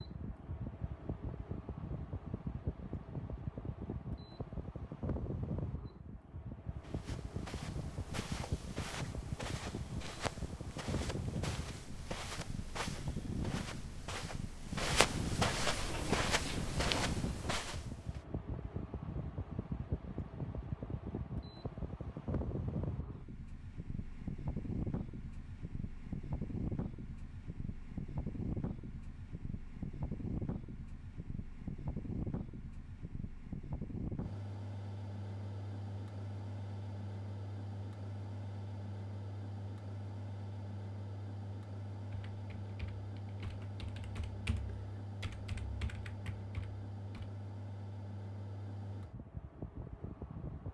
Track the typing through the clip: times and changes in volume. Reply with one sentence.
The typing can be heard from 42.1 to 47.3 s, getting louder then quieter.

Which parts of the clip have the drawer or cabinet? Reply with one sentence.
The drawer or cabinet can be heard from 15.8 to 17.6 s.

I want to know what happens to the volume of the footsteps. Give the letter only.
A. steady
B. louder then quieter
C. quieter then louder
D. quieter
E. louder
E.